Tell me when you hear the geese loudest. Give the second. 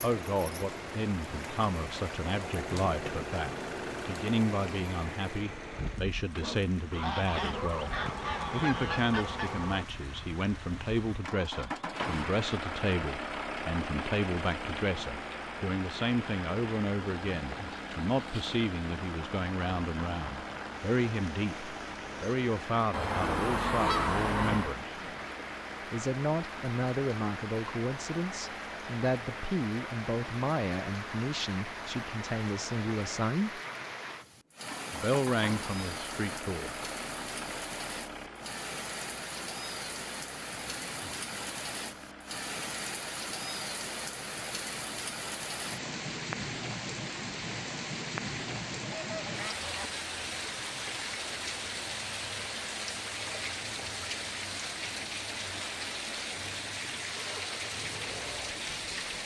24 s.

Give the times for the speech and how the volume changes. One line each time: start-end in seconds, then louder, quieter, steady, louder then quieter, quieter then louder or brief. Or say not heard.
0.0-25.0 steady
25.9-33.6 steady
34.9-36.8 brief.